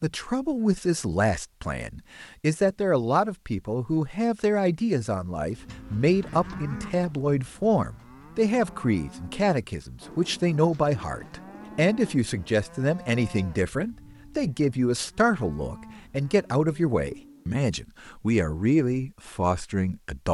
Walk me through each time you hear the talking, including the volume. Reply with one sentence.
The talking can be heard from 0.0 to 20.2 s, at a steady volume.